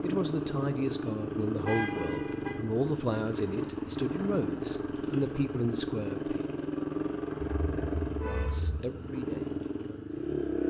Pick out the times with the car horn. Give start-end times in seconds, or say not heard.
1.6-2.5, 7.4-8.8.